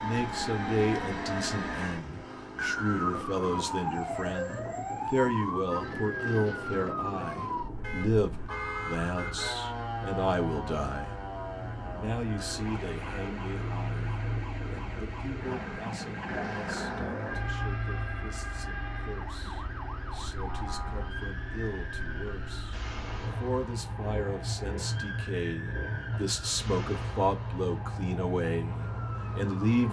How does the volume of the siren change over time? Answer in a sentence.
The loudness of the siren goes down.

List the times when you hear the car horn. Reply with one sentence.
You can hear the car horn from 7.8 to 9.6 s.